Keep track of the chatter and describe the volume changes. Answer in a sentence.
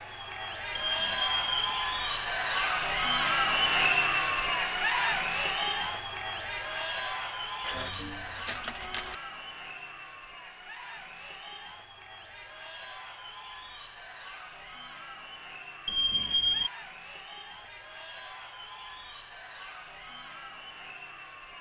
The volume of the chatter goes down.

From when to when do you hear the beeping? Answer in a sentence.
The beeping can be heard from 0.8 to 1.9 s and from 15.8 to 16.7 s.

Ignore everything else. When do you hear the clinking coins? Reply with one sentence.
The clinking coins can be heard from 7.7 to 9.2 s.